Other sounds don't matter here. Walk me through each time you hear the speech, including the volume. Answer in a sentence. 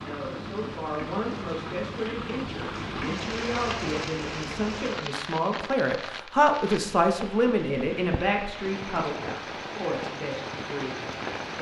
The speech can be heard from 0.0 to 11.5 s, getting louder then quieter.